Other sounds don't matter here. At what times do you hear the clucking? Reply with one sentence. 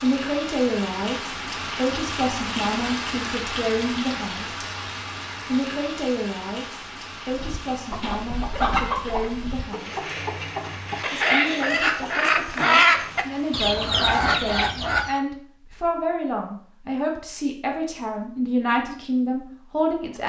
You can hear the clucking from 7.3 to 15.2 s.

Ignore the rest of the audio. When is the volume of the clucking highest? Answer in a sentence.
The loudest moment of the clucking is at 13 seconds.